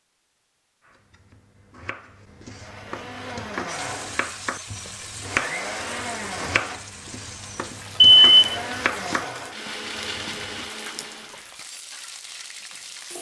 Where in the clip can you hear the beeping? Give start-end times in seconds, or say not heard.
8.0-8.6.